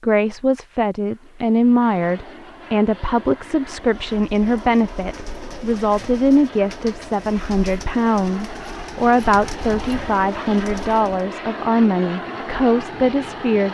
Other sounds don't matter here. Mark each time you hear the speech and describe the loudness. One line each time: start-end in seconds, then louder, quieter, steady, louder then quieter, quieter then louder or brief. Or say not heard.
0.0-13.6 steady.